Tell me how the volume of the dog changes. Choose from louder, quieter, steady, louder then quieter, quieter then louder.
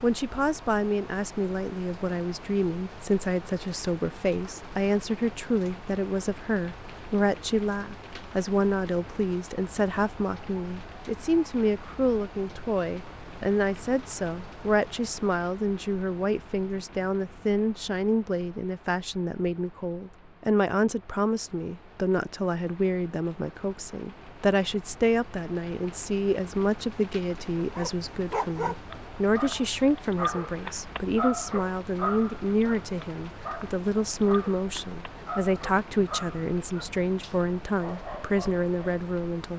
quieter.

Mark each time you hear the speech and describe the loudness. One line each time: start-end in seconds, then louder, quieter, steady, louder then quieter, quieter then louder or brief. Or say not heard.
0.0-39.5 steady.